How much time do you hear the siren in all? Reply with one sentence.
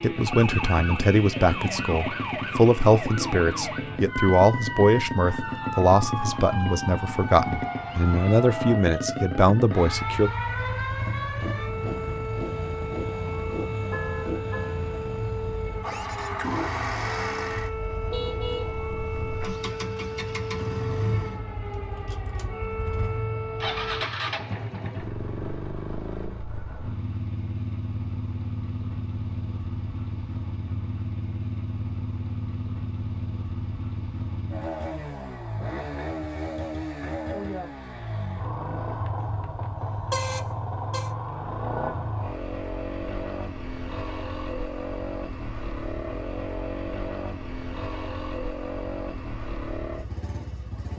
You can hear the siren for 24 seconds altogether.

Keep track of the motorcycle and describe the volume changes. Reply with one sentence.
The loudness of the motorcycle stays about the same.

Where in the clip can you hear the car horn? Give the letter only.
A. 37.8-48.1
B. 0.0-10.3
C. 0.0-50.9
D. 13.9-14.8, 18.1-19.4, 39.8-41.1
D.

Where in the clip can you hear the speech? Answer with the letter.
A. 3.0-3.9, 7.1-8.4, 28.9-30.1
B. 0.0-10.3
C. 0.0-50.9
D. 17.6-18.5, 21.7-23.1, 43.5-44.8
B.